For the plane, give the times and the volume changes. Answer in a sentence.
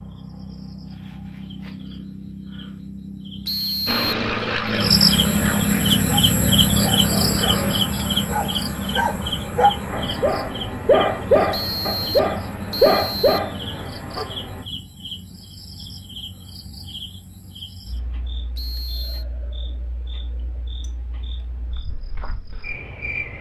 You can hear the plane from 3.9 to 14.7 s, getting quieter.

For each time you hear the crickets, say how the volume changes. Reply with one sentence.
You can hear the crickets from 0.0 to 23.3 s, getting louder then quieter.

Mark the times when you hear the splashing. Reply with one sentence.
You can't hear the splashing here.